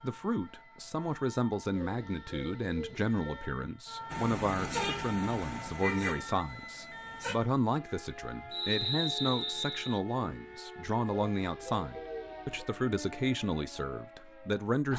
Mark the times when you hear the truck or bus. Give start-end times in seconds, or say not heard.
4.1-7.3.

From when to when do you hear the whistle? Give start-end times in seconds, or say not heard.
8.5-10.0.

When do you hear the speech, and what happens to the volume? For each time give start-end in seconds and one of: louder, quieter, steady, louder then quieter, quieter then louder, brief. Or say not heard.
0.0-14.9 steady.